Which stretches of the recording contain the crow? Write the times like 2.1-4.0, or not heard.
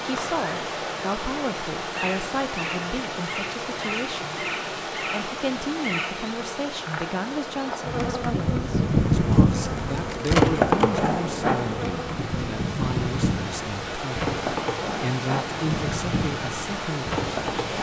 not heard.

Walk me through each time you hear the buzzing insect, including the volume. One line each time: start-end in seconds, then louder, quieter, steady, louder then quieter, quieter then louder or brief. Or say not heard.
0.0-17.7 louder then quieter.